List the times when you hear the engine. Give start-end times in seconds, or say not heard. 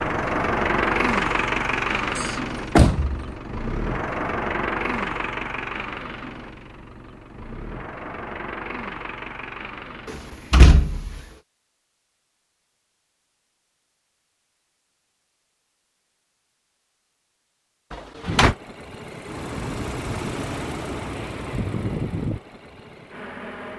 0.0-10.5, 18.2-23.7.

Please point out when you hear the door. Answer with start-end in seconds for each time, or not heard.
2.1-3.3, 10.1-11.2, 17.9-18.6.